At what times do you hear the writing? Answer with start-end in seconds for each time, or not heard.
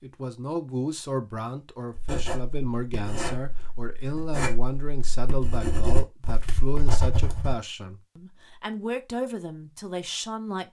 1.9-7.5.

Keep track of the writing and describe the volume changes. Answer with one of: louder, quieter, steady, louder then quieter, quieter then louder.
quieter then louder.